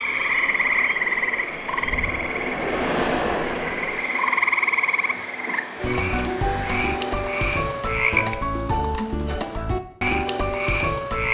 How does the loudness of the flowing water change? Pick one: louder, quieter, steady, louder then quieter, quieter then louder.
louder then quieter.